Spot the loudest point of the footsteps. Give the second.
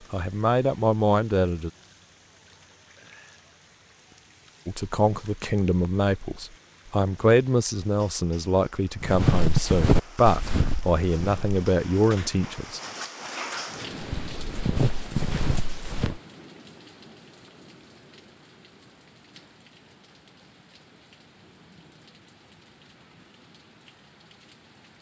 9 s.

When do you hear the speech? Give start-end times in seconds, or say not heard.
0.1-1.7, 4.7-12.8.